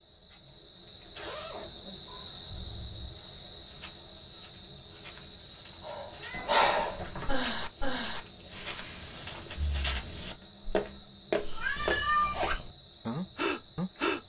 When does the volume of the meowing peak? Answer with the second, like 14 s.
12 s.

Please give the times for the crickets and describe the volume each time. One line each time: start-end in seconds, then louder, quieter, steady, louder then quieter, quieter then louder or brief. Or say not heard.
0.0-14.2 quieter.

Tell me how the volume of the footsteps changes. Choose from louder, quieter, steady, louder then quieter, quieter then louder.
louder.